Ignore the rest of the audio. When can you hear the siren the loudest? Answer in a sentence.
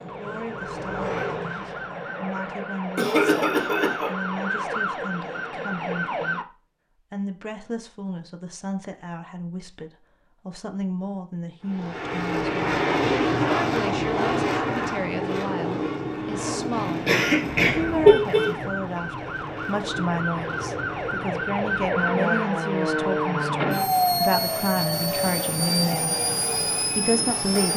The volume of the siren peaks at 24 seconds.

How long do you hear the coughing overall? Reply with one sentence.
You can hear the coughing for 2 seconds altogether.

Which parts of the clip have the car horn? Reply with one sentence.
The car horn can be heard from 17.4 to 18.6 s.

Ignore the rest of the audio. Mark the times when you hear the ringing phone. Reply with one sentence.
You can't hear the ringing phone here.